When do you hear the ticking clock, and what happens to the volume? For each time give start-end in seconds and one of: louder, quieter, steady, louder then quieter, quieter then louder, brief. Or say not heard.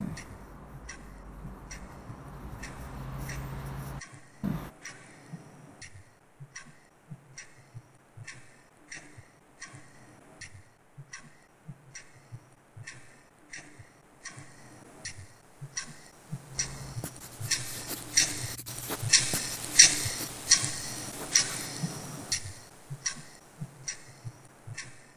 0.0-25.1 louder.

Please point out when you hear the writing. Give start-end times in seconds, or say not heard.
0.0-4.7, 16.6-22.4.